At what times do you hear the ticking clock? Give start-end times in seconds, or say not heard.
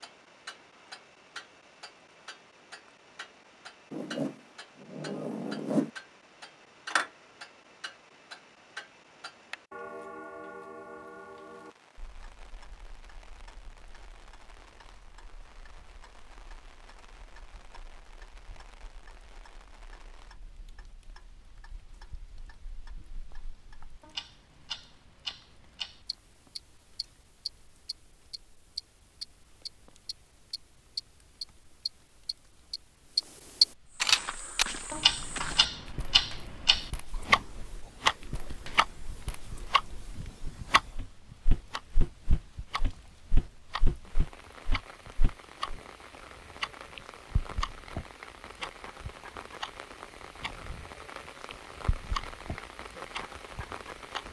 0.0-54.2.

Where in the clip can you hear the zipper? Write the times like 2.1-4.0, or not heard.
3.9-5.9.